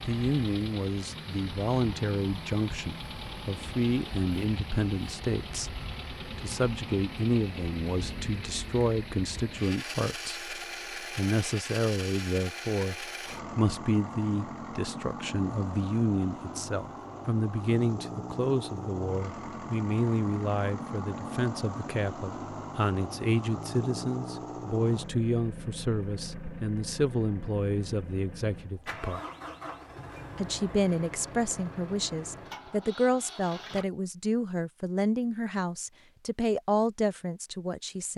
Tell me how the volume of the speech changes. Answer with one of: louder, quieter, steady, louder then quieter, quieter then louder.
steady.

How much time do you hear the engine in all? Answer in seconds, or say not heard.
34 s.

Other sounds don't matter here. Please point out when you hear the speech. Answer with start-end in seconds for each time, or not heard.
0.1-29.2, 30.4-38.1.